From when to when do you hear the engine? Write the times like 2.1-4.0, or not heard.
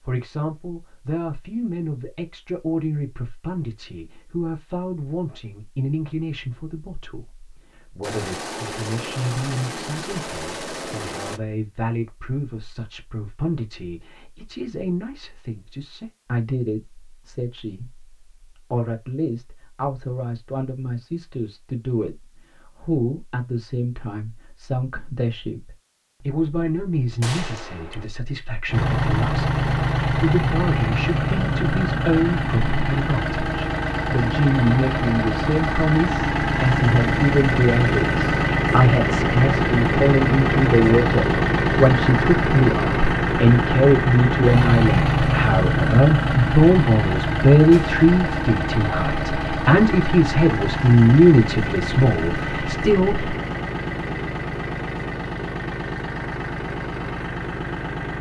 28.6-58.1.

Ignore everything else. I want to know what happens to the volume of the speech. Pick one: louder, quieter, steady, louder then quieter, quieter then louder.
louder.